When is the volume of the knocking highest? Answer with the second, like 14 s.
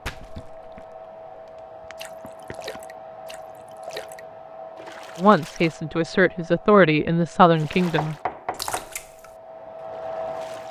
8 s.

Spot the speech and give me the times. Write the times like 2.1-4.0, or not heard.
5.2-8.6.